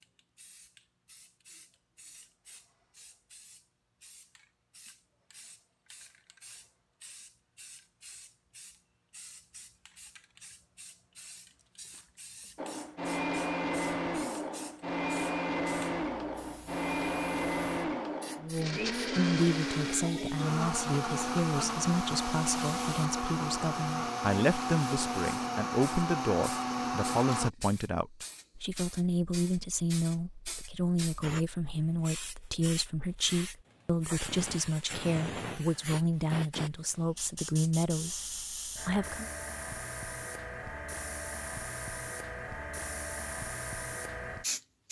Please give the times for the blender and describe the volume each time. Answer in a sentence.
You can hear the blender from 12.6 to 27.5 s, at a steady volume.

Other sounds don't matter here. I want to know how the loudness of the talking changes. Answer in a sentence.
The volume of the talking stays about the same.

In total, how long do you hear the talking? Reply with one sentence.
You can hear the talking for 21 seconds altogether.